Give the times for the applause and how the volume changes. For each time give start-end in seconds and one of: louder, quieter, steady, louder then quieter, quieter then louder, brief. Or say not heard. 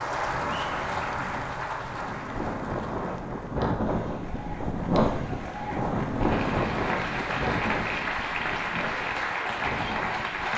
0.0-10.5 quieter then louder.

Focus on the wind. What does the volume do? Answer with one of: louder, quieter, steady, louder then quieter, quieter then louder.
louder then quieter.